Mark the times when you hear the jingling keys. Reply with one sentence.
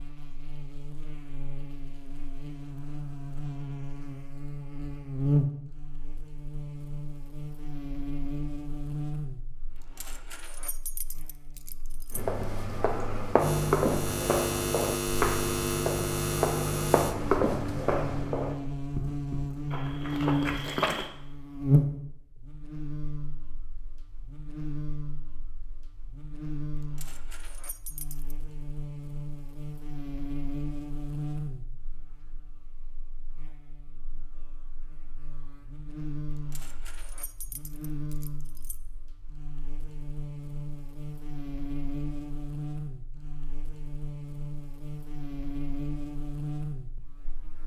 The jingling keys can be heard from 9.7 to 12.2 s, from 26.7 to 28.4 s and from 36.2 to 38.8 s.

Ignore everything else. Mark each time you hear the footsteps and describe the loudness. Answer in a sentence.
You can hear the footsteps from 12.1 to 21.1 s, getting quieter.